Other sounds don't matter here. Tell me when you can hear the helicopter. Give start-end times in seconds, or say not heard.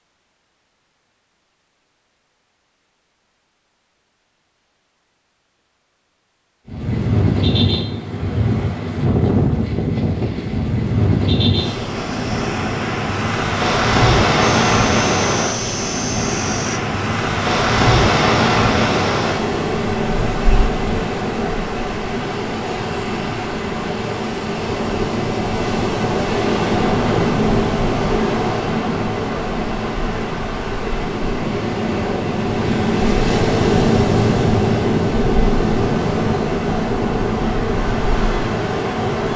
14.4-16.8.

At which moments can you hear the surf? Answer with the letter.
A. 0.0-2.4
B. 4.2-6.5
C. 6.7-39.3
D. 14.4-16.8
C.